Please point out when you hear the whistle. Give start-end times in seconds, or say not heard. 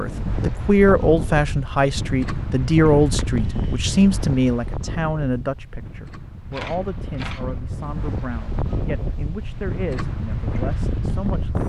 not heard.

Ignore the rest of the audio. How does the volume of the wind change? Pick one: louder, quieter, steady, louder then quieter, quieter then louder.
quieter then louder.